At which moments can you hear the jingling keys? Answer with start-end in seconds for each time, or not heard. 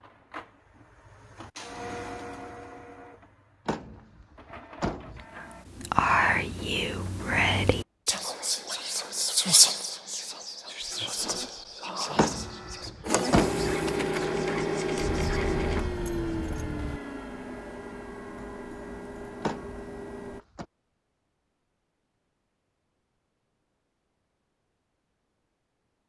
14.9-17.0.